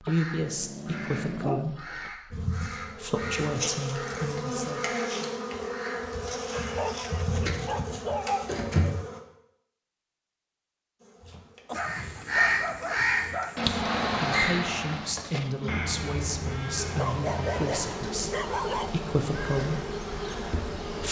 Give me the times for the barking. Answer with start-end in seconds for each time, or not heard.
0.1-2.1, 6.5-8.4, 11.7-13.6, 16.8-18.9.